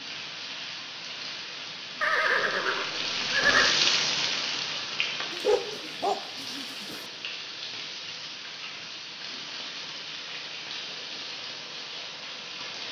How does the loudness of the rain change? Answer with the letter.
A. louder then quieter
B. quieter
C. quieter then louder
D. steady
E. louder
A.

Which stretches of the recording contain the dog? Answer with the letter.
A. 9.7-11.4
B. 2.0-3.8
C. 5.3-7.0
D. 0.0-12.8
C.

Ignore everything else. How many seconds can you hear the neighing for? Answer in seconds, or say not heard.
2 s.